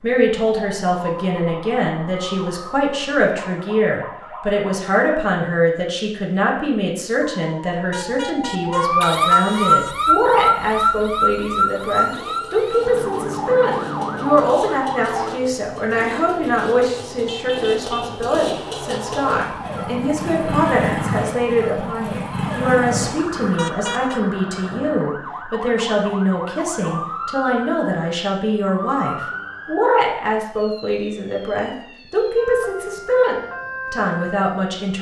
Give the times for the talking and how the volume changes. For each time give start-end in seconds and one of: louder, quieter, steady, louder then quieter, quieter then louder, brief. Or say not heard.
0.0-34.9 steady.